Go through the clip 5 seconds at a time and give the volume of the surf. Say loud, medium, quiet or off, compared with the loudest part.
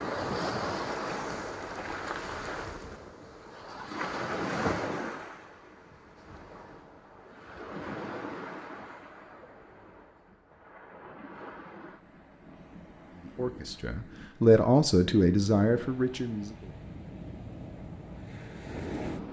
loud, medium, quiet, medium.